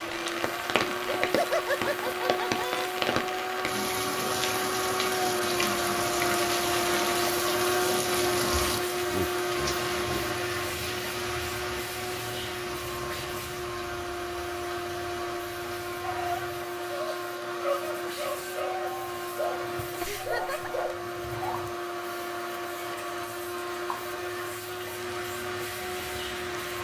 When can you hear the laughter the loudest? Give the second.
2 s.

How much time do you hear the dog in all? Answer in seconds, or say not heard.
6 s.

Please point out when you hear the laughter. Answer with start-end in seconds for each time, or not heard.
0.8-2.9, 9.1-10.3, 20.0-20.7.